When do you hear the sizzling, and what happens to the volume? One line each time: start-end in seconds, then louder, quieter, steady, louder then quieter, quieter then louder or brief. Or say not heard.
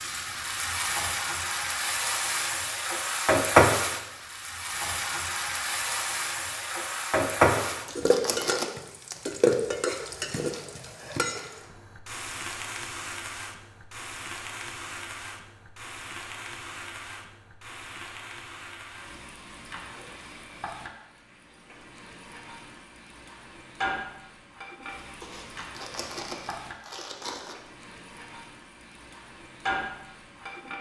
0.0-30.7 quieter.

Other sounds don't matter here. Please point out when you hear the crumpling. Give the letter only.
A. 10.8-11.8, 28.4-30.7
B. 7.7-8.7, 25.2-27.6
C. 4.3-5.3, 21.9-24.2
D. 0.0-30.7
B.